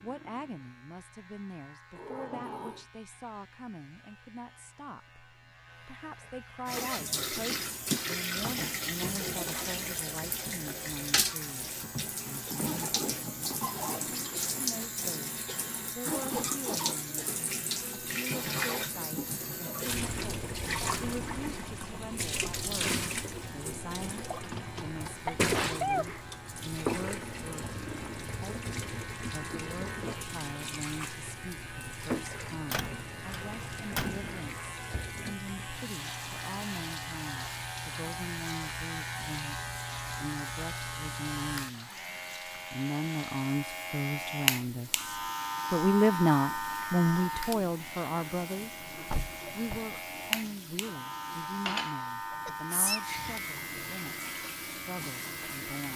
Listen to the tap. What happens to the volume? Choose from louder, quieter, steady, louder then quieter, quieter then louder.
quieter.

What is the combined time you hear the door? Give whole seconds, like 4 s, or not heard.
3 s.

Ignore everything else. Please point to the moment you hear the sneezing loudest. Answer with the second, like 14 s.
26 s.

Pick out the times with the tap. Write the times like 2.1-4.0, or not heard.
6.7-55.9.